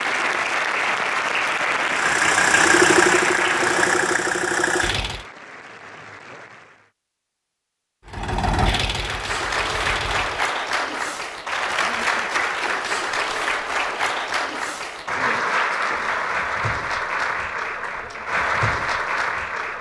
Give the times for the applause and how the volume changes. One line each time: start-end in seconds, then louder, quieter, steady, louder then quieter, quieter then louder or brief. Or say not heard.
0.0-6.9 quieter
8.8-19.7 steady.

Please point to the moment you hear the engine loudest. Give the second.
3 s.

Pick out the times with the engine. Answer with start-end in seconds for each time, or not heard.
1.8-5.2, 8.1-10.4.